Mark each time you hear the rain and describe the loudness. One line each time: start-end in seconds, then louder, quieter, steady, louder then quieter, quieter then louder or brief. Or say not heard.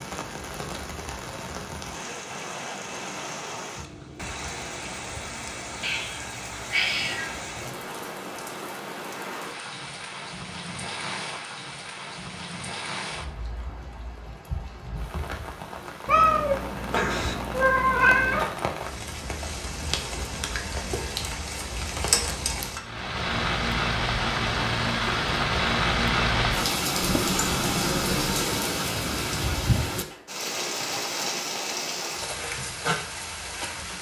0.0-33.9 louder.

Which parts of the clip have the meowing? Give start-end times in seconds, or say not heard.
5.8-7.3, 16.1-18.4, 27.0-28.4.